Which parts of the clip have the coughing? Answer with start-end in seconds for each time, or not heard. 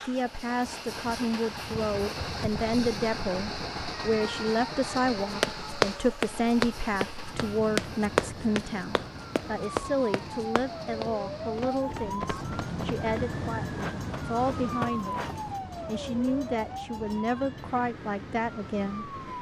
not heard.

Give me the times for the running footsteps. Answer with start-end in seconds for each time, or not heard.
5.3-15.4.